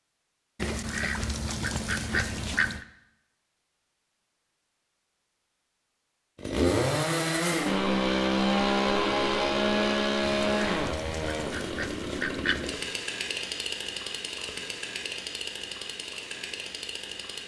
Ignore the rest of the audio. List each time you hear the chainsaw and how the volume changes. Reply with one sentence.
You can hear the chainsaw from 6.3 to 17.4 s, getting quieter.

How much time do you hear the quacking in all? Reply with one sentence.
You can hear the quacking for 5 seconds altogether.